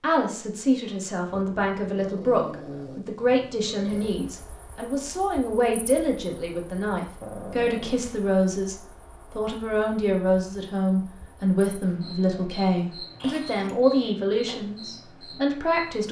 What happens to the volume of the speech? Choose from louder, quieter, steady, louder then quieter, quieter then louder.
steady.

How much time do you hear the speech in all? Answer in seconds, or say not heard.
16 s.